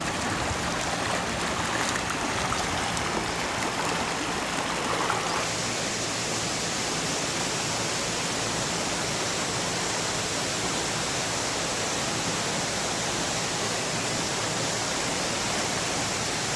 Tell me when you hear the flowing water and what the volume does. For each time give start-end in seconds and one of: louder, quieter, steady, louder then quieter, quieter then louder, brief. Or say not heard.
0.0-16.5 steady.